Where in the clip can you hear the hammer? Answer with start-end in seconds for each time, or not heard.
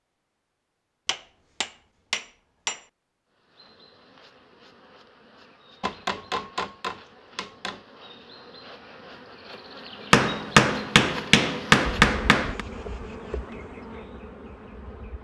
1.1-2.9, 5.8-7.8, 10.1-12.7.